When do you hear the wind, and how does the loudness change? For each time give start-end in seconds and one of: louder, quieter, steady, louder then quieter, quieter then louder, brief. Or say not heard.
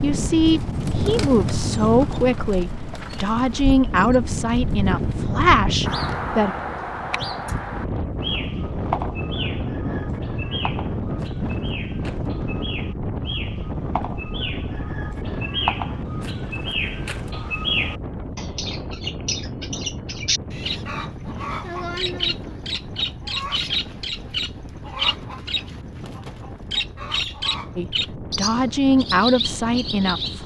0.0-30.4 quieter.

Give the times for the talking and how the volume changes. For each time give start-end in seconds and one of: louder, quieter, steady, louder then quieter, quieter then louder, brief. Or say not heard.
0.0-6.5 steady
27.8-30.4 brief.